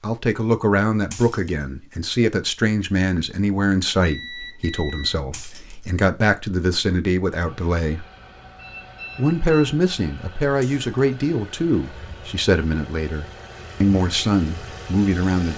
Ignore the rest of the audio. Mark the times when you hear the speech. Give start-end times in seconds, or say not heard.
0.0-8.1, 9.2-15.5.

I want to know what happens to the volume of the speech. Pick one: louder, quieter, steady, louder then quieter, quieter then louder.
steady.